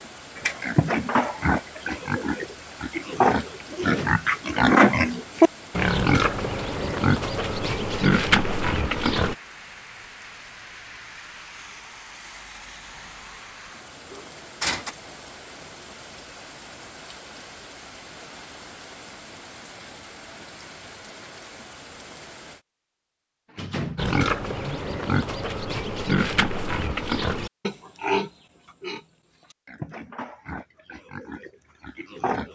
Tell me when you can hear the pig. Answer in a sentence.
The pig can be heard from 0.3 to 9.3 s and from 23.9 to 32.5 s.